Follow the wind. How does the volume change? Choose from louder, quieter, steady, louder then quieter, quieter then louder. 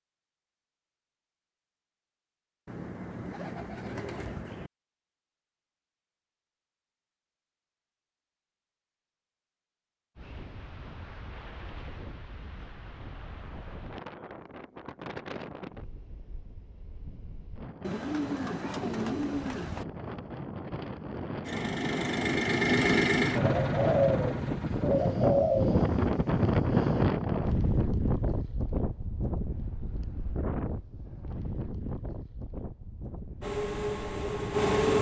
louder then quieter.